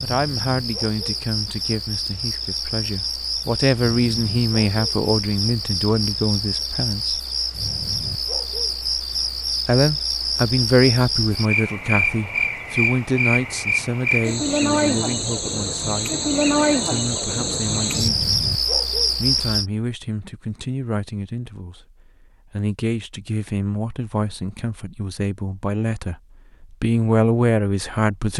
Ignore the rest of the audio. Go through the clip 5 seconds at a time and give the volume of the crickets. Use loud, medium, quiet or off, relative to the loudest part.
medium, loud, loud, loud, off, off.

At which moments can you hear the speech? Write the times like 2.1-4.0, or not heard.
0.0-7.2, 9.7-16.1, 16.9-18.3, 19.1-28.3.